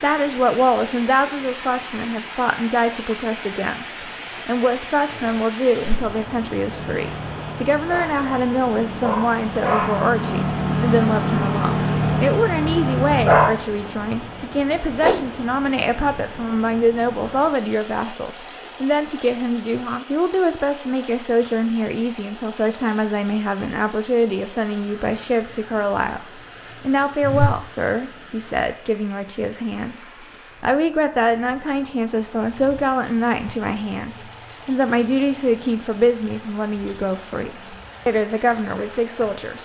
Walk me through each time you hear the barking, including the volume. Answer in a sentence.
You can hear the barking from 6.7 to 13.4 s, getting louder.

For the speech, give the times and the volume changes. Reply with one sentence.
The speech can be heard from 0.0 to 30.0 s, at a steady volume; and from 30.6 to 39.6 s, at a steady volume.